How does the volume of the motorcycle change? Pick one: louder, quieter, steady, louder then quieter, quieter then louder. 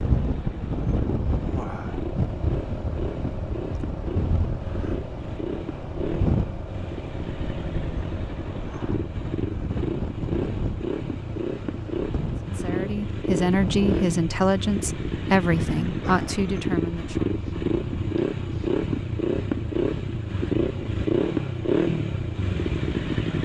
louder.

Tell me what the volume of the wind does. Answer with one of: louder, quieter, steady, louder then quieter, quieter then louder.
quieter.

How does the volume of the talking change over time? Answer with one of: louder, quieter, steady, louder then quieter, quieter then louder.
steady.